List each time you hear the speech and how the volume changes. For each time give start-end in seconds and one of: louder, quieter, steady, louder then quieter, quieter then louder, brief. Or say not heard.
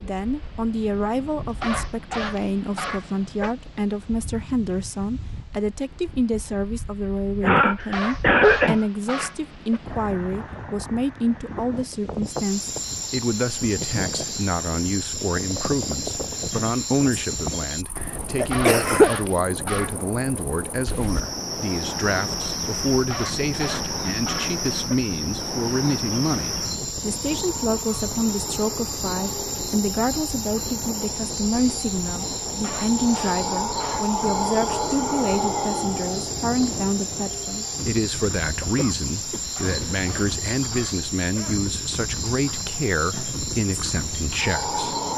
0.0-45.0 steady.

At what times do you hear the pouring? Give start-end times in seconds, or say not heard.
not heard.